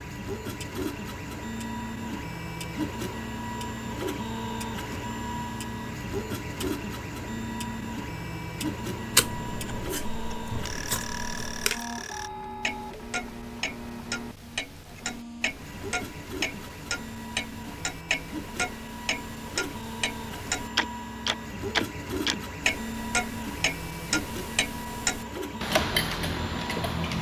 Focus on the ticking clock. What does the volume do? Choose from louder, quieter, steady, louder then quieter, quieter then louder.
louder.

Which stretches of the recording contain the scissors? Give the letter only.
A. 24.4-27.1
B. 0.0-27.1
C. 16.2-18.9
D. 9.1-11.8
D.